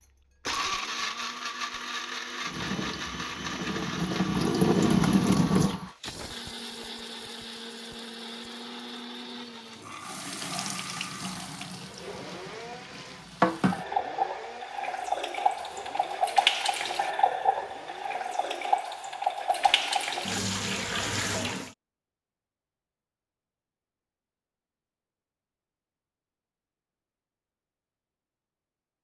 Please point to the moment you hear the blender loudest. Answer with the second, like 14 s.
1 s.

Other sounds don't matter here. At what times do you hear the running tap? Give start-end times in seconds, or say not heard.
2.5-5.8, 10.0-21.7.